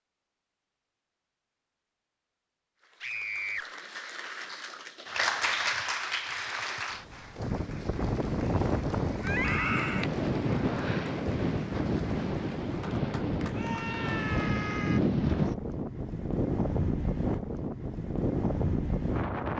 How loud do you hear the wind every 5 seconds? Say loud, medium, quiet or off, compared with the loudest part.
off, loud, loud, loud.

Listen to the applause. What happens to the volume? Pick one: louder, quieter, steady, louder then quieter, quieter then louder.
louder then quieter.